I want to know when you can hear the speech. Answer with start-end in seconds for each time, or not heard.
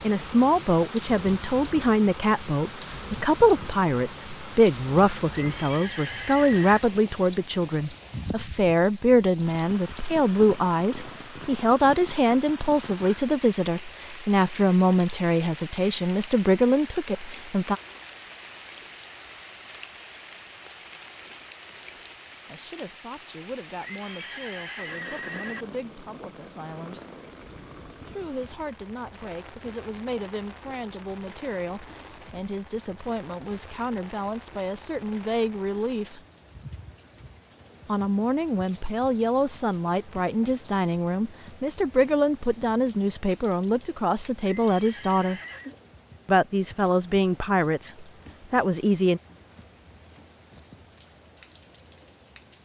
0.0-17.8, 22.5-27.1, 28.1-36.2, 37.9-45.4, 46.2-49.2.